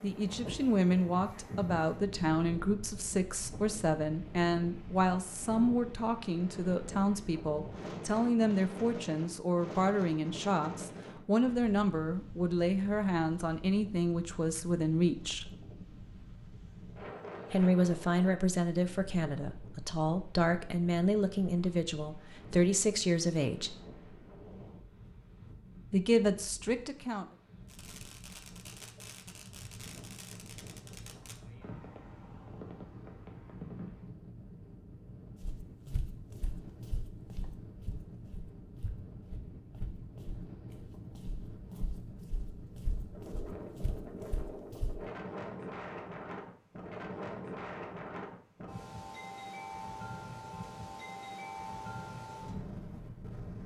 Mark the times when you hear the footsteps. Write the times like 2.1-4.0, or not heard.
35.4-45.0.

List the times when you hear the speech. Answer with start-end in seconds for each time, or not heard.
0.0-15.5, 17.5-23.8, 25.9-27.2.